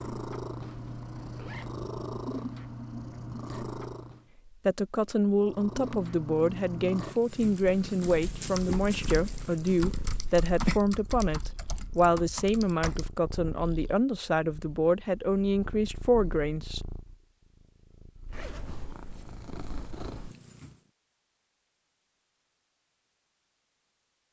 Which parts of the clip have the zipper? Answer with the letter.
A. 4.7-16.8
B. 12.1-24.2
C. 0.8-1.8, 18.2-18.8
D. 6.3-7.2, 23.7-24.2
C.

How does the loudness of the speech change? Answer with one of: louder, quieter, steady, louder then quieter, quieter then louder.
steady.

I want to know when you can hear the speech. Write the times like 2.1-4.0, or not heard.
4.7-16.8.